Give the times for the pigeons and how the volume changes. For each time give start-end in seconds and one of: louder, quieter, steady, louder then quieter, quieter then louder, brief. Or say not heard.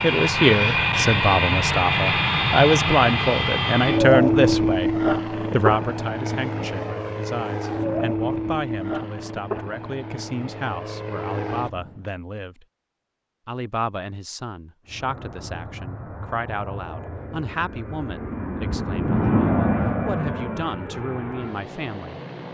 not heard.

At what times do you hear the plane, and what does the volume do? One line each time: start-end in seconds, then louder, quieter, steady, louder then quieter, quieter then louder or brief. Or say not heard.
0.0-12.1 quieter
14.8-22.4 louder then quieter.